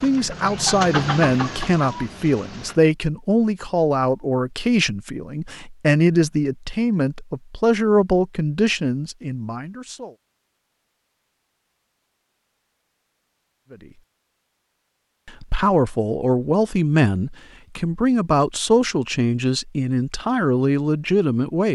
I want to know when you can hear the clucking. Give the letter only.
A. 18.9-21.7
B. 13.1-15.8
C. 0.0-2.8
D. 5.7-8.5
C.